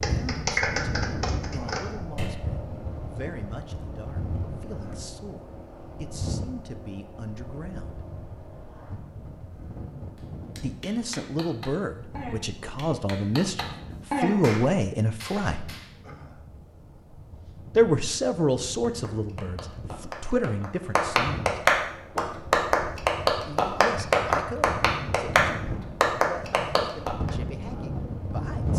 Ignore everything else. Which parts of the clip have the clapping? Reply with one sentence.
The clapping can be heard from 0.0 to 2.5 s, from 10.2 to 15.9 s and from 18.9 to 27.3 s.